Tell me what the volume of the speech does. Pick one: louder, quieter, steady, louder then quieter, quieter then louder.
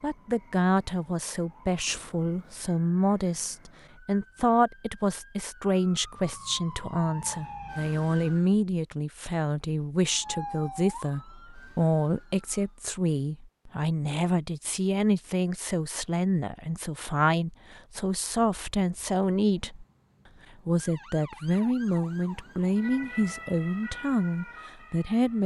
steady.